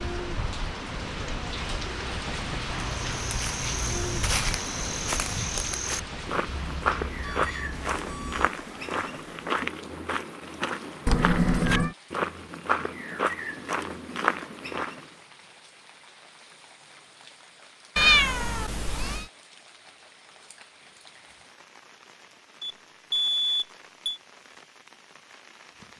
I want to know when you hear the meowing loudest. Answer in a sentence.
The volume of the meowing peaks at 18 seconds.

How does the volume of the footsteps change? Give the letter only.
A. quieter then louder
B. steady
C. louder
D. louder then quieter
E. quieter
B.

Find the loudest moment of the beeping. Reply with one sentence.
The volume of the beeping peaks at 23 seconds.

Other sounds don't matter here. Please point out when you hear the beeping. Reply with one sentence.
You can hear the beeping from 6.5 to 8.5 s and from 22.6 to 24.2 s.